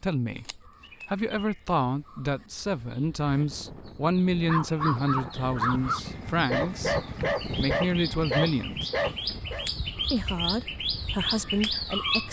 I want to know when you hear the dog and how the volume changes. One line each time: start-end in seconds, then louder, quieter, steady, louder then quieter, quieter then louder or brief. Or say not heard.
4.5-9.7 steady.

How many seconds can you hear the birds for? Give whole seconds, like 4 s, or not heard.
12 s.